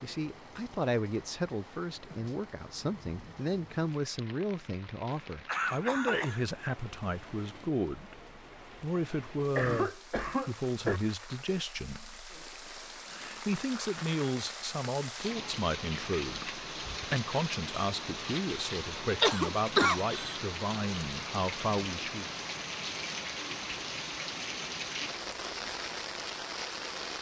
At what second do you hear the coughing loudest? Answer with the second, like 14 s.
20 s.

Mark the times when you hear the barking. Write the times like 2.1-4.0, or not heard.
not heard.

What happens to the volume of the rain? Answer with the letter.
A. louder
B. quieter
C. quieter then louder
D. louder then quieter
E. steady
A.